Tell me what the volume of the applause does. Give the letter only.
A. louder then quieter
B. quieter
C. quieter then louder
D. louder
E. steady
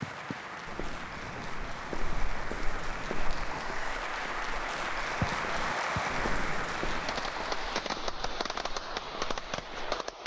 D.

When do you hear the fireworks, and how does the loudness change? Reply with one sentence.
You can hear the fireworks briefly from 0.0 to 1.9 s; and from 4.8 to 10.2 s, getting quieter then louder.